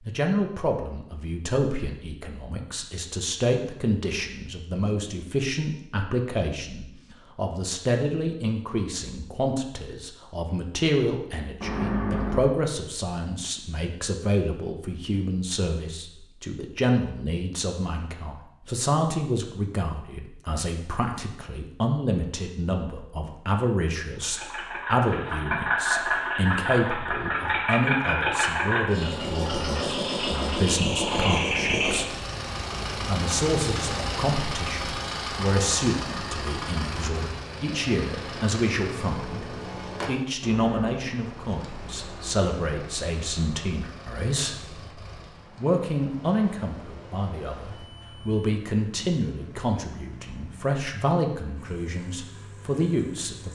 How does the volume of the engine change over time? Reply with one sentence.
The volume of the engine goes down.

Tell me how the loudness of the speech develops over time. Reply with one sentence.
The loudness of the speech stays about the same.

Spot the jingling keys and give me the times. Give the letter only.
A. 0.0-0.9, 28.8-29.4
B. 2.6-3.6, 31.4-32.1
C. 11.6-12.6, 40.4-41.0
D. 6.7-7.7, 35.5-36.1
C.